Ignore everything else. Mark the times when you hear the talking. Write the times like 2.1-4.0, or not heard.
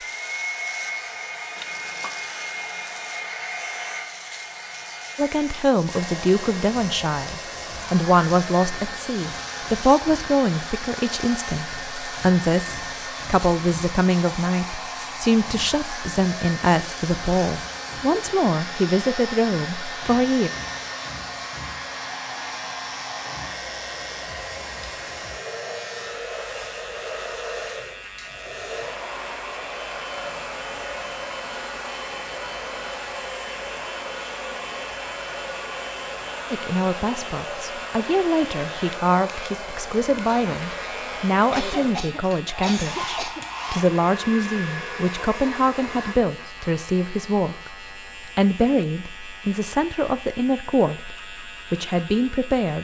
5.2-20.5, 36.5-52.7.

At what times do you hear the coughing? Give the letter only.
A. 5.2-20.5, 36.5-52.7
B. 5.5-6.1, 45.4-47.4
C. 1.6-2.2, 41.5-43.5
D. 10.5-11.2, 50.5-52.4
C.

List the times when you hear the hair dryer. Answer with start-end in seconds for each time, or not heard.
0.0-46.1.